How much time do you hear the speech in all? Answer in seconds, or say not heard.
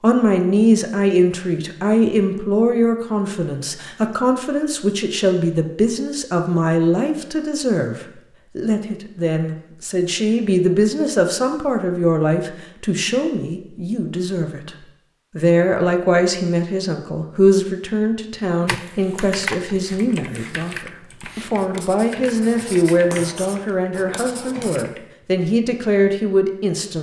26 s.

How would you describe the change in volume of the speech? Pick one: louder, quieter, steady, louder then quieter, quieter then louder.
steady.